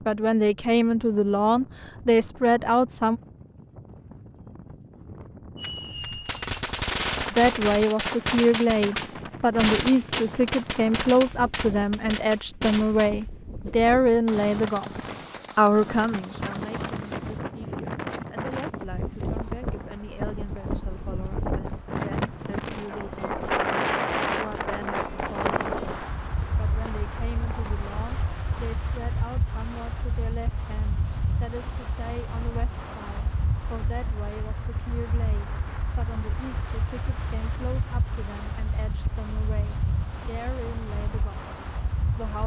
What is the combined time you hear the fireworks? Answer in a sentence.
You can hear the fireworks for 12 seconds altogether.